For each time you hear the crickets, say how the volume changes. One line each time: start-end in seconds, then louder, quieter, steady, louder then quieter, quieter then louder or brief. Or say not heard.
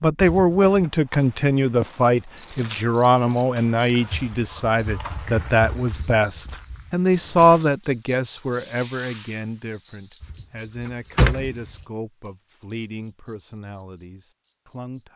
2.4-15.1 quieter.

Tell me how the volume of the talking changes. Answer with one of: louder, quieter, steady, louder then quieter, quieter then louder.
quieter.